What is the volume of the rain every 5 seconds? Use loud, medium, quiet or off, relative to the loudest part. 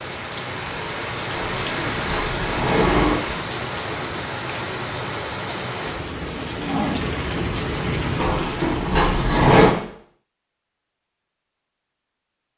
loud, loud, off.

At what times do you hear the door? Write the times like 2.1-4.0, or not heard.
1.4-3.2, 8.2-9.8.